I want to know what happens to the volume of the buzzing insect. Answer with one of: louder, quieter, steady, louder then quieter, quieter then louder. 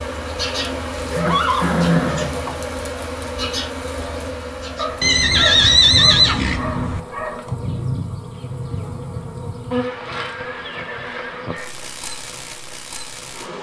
quieter.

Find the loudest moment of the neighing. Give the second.
6 s.